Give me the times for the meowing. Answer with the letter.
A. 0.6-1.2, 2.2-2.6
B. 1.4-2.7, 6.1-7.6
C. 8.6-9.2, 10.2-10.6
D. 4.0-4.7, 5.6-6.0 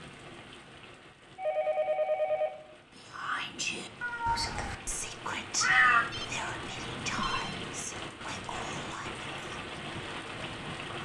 D.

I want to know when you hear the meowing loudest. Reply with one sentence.
The volume of the meowing peaks at 6 seconds.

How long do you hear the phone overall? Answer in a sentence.
The phone can be heard for 3 seconds in total.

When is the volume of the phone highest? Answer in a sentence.
The volume of the phone peaks at 2 seconds.